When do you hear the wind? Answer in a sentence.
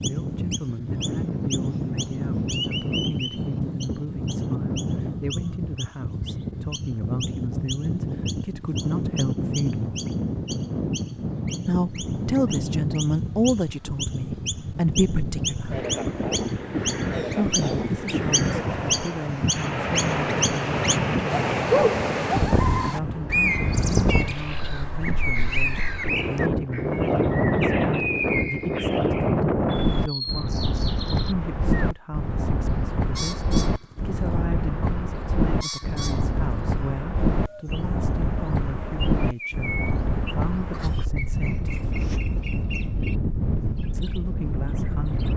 The wind can be heard from 0.0 to 45.3 s.